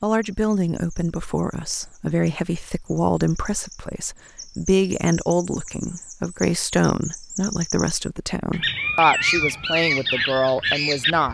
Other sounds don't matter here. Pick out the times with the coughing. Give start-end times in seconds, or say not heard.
not heard.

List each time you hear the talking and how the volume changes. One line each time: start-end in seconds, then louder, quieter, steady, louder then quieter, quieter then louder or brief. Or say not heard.
0.0-11.3 steady.